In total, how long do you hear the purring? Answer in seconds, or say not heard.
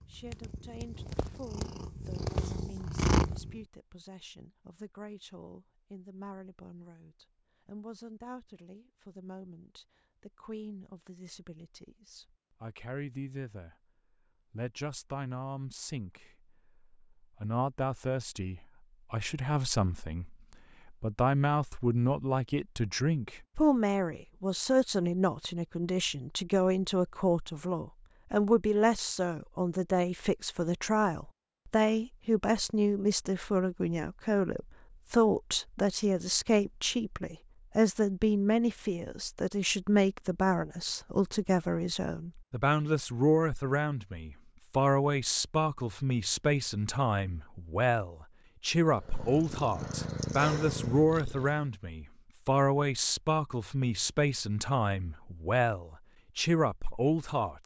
6 s.